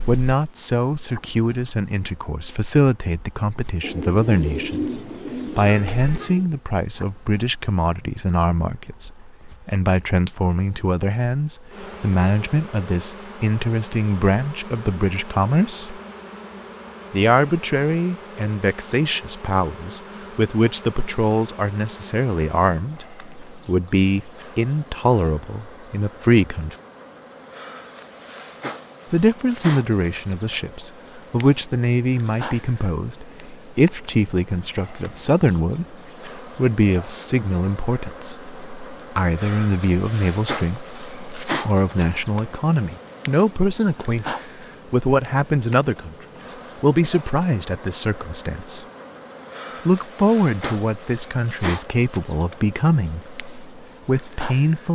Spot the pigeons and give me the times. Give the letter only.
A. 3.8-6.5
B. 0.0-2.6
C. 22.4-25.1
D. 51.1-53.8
A.